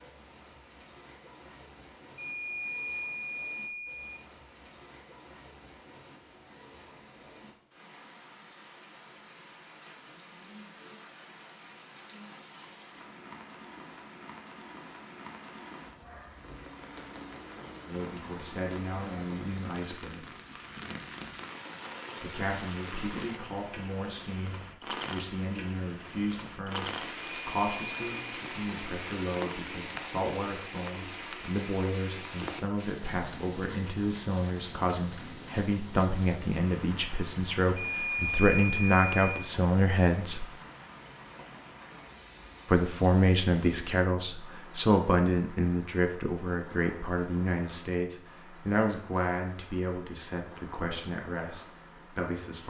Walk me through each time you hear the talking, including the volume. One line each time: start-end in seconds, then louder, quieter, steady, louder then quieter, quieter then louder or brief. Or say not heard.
17.9-20.2 brief
22.2-40.5 louder
42.6-52.6 quieter.